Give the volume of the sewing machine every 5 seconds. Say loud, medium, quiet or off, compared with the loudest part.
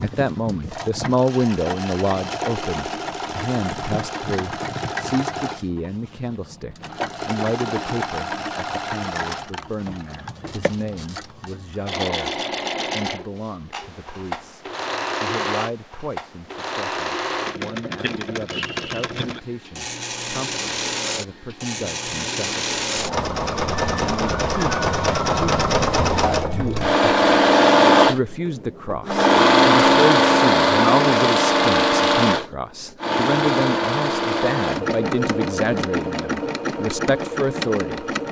quiet, quiet, quiet, quiet, medium, loud, loud, medium.